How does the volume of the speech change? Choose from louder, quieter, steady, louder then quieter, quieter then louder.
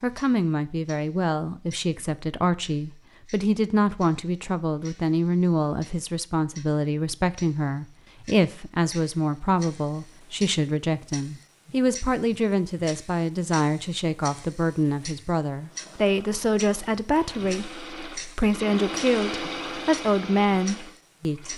steady.